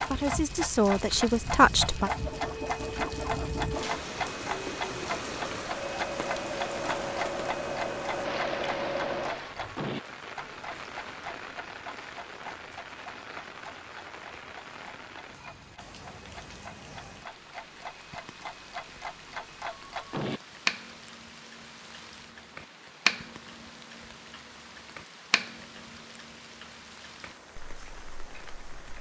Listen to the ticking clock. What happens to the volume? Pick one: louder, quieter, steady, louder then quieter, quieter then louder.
quieter then louder.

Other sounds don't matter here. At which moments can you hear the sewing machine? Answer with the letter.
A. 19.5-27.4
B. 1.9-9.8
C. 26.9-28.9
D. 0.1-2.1
B.